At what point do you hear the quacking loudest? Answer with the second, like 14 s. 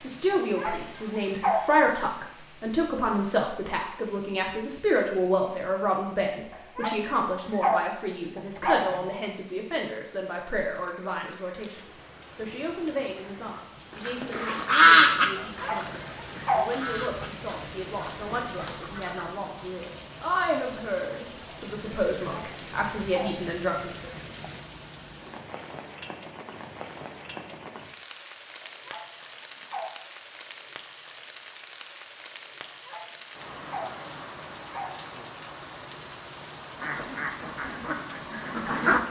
15 s.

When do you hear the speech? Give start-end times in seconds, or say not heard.
0.0-24.1.